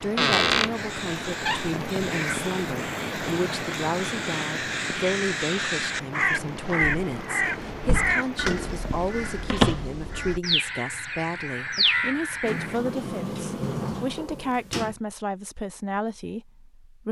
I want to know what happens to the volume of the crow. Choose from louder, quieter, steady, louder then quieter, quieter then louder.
louder.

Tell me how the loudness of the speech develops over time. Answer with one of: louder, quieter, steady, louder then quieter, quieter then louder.
steady.